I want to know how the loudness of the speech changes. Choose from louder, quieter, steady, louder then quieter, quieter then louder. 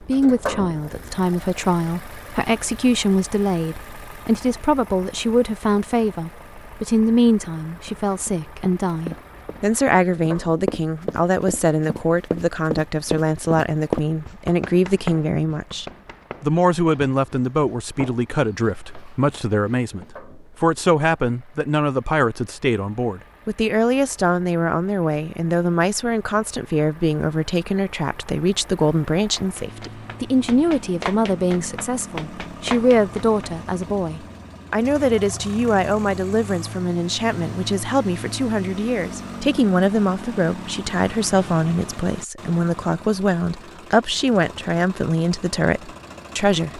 steady.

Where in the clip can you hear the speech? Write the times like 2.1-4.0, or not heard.
0.0-46.7.